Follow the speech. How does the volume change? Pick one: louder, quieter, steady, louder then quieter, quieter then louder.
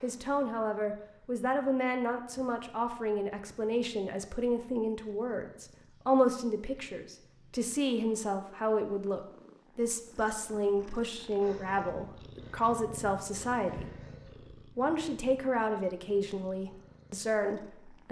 steady.